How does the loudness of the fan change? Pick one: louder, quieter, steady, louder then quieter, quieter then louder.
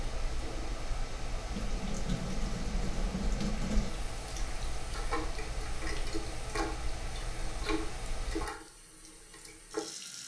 steady.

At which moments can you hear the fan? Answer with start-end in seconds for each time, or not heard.
0.0-8.5.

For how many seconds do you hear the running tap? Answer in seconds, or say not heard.
10 s.